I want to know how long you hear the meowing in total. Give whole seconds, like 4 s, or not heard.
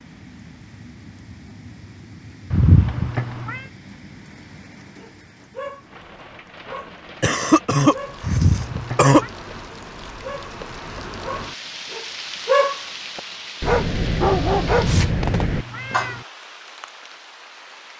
4 s.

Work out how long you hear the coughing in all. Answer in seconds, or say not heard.
2 s.